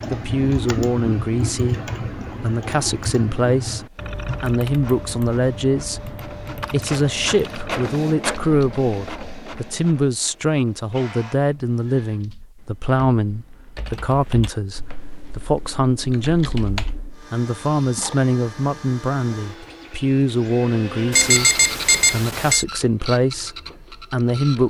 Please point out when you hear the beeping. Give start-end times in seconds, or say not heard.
21.1-22.6.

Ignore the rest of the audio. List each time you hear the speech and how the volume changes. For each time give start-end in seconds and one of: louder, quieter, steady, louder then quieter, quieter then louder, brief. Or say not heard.
0.1-24.6 steady.